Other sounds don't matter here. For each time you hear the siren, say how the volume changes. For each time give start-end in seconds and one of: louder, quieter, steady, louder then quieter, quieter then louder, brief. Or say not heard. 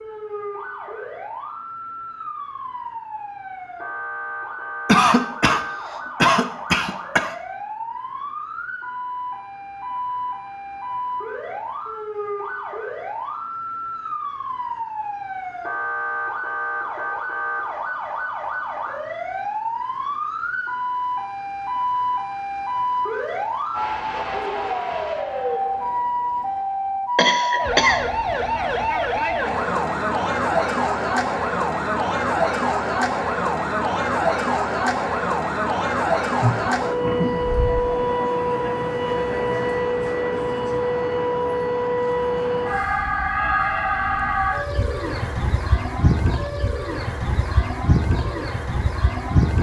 0.0-49.5 louder.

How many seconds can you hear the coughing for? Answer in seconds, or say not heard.
4 s.